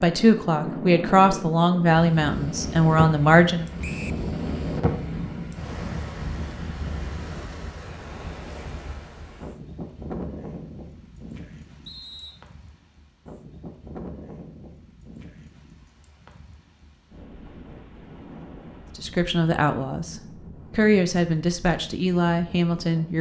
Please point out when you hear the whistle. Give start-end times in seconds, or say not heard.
3.8-4.2, 11.8-12.4.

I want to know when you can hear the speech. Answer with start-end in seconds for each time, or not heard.
0.0-3.6, 18.9-23.1.